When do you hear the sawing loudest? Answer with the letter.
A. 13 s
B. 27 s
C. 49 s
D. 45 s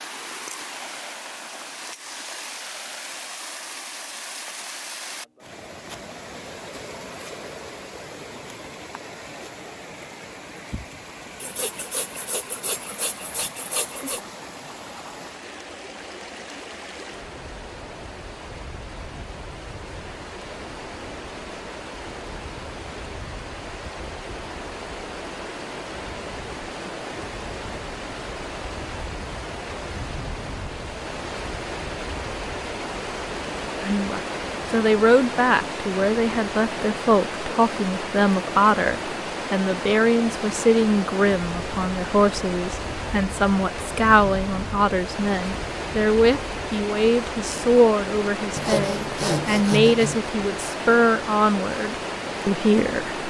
C.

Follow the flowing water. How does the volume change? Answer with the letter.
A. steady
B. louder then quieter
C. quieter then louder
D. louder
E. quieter
D.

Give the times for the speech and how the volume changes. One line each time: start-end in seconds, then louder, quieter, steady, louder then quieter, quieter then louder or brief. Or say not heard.
33.8-53.2 steady.